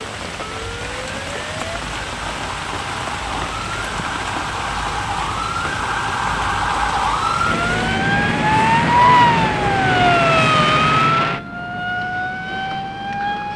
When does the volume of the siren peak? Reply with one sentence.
The loudest moment of the siren is at 9 seconds.